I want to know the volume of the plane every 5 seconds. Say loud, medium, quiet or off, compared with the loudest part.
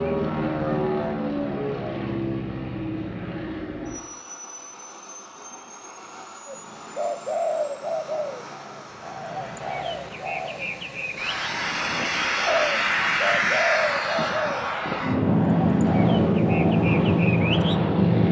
medium, quiet, medium, loud.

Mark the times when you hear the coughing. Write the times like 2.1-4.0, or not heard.
not heard.